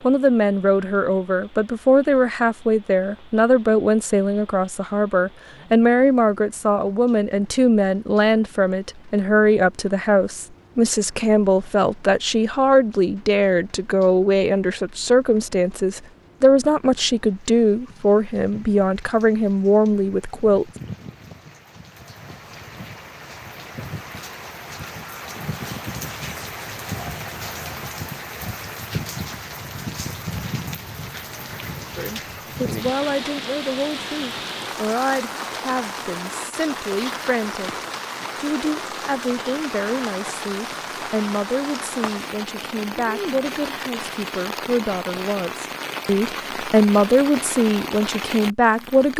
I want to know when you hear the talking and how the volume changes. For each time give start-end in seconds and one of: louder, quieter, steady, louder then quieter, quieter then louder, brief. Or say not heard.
0.0-20.6 steady
31.9-49.1 louder.